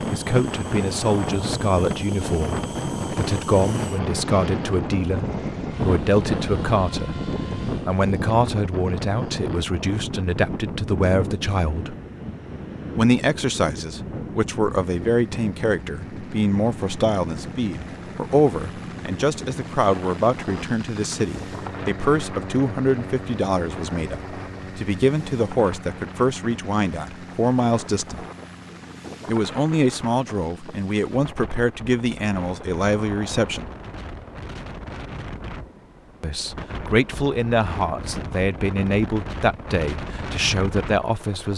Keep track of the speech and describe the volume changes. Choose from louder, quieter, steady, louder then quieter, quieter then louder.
steady.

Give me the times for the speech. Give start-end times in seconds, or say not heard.
0.0-11.9, 12.9-28.2, 29.2-33.7, 36.2-41.5.